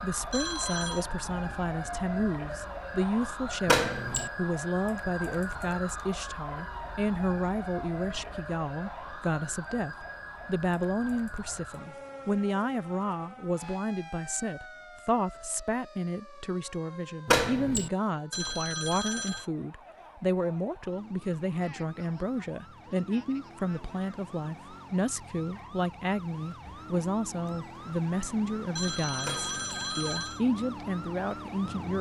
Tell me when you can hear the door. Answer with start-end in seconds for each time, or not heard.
3.6-4.3, 17.2-17.9, 29.2-29.6.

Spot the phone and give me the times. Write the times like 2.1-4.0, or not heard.
0.3-1.1, 18.3-19.5, 28.8-30.4.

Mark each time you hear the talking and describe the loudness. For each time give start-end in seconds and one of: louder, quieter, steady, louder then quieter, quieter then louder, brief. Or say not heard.
0.0-31.9 steady.